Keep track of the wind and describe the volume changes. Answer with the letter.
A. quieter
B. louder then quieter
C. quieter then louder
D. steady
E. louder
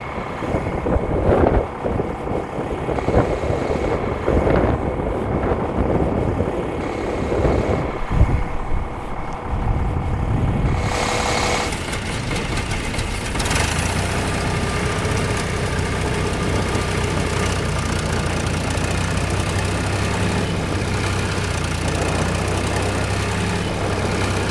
A.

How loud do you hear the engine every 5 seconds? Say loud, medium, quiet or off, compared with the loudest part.
medium, medium, loud, loud, loud.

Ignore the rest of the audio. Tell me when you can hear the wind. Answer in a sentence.
You can hear the wind from 0.0 to 24.4 s.